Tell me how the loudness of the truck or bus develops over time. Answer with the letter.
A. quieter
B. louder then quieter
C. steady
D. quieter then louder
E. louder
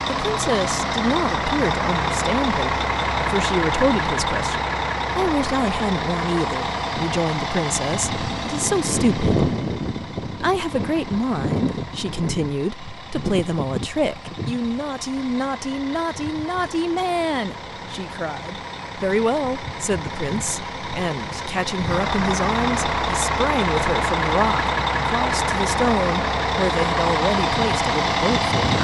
D.